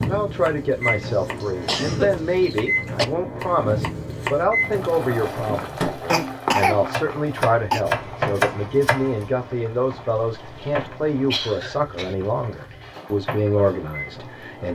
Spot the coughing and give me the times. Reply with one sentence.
You can hear the coughing from 1.1 to 2.4 s, from 6.1 to 7.8 s and from 10.2 to 12.2 s.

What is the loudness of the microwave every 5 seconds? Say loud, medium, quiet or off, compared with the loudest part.
loud, loud, medium.